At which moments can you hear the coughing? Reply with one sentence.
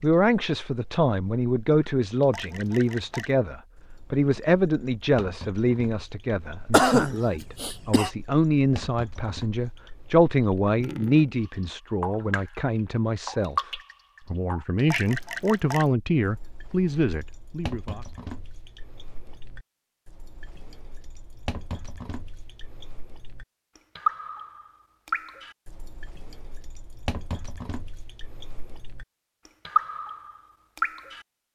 The coughing can be heard from 6.7 to 8.1 s.